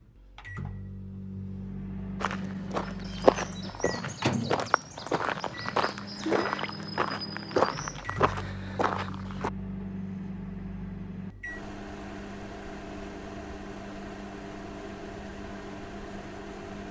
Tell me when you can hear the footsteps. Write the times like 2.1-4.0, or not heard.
2.2-9.5.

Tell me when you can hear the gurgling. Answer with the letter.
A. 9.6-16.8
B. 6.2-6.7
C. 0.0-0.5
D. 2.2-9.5
B.